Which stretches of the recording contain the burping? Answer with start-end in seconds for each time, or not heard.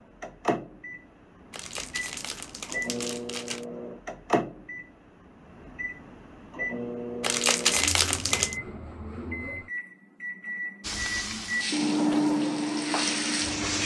not heard.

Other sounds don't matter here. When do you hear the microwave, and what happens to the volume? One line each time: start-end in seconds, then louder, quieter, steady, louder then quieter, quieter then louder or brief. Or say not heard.
0.1-13.8 louder.